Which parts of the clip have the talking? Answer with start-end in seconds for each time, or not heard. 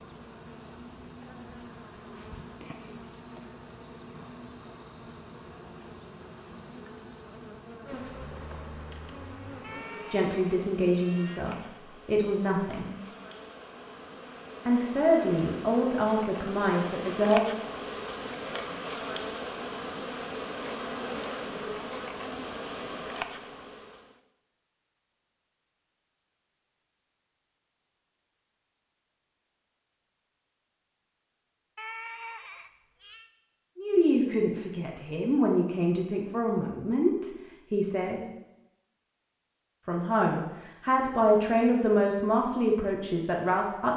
10.1-12.9, 14.7-17.6, 33.8-38.2, 39.9-43.9.